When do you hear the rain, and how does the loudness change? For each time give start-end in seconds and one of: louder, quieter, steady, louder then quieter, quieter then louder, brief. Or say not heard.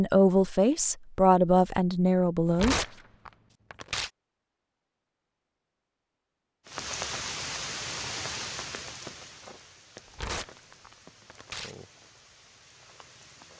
6.7-13.5 quieter.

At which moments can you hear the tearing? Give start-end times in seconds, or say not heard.
2.5-4.1, 10.1-11.8.